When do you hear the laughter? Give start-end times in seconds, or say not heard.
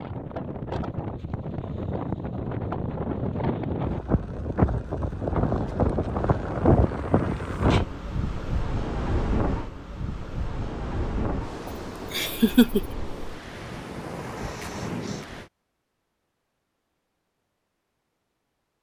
11.7-12.8.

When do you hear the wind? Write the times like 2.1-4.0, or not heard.
0.0-15.5.